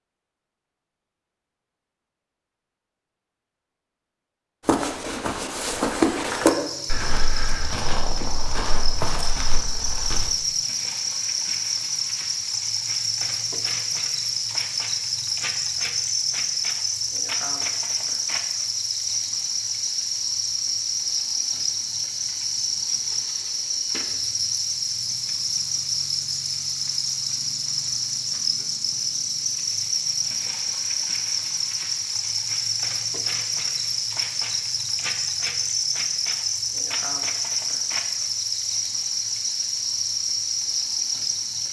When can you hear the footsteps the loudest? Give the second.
6 s.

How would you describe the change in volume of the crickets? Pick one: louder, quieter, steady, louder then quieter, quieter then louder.
steady.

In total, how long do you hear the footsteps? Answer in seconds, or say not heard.
6 s.